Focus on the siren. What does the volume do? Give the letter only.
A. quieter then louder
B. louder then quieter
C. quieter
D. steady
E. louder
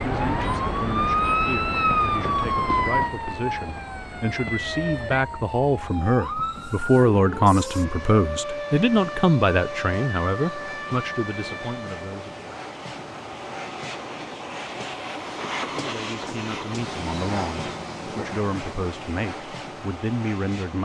C.